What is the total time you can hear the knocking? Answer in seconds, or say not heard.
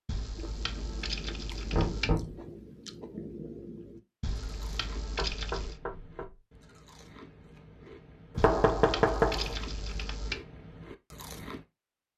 3 s.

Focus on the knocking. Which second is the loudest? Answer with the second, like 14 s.
9 s.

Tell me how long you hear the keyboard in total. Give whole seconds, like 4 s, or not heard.
6 s.